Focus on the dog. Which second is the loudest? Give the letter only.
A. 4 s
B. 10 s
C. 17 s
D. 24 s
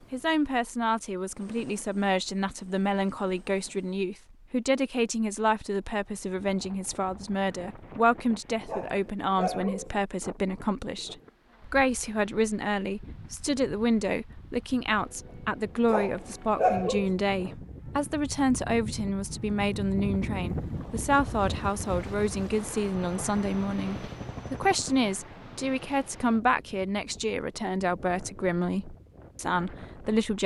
C.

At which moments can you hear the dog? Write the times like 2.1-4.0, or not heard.
8.7-9.9, 15.8-17.1.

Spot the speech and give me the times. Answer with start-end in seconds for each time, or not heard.
0.1-30.4.